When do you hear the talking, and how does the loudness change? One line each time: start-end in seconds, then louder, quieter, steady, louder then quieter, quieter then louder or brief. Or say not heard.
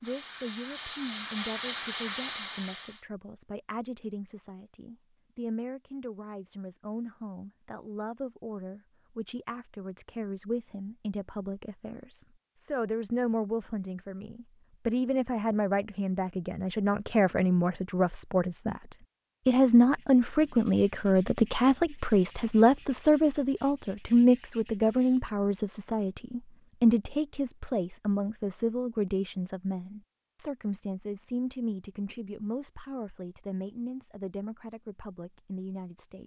0.0-36.2 louder then quieter.